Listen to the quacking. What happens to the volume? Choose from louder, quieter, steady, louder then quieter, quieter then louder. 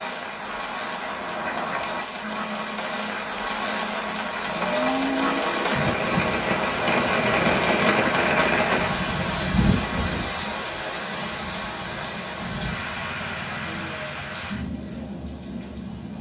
louder then quieter.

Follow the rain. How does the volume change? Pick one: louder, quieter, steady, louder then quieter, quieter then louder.
louder then quieter.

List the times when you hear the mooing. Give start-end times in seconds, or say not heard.
4.5-5.9.